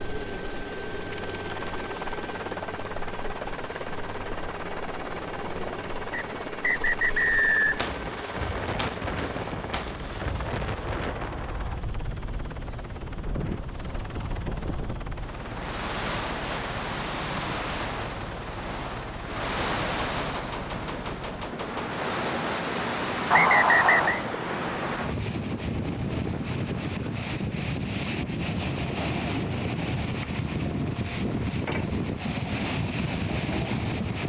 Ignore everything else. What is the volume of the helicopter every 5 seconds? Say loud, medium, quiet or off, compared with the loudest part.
loud, loud, medium, medium, medium, medium, medium.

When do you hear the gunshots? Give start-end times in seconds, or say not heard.
7.8-11.8, 19.9-21.9.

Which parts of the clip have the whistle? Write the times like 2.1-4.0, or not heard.
6.1-7.8, 23.3-24.2.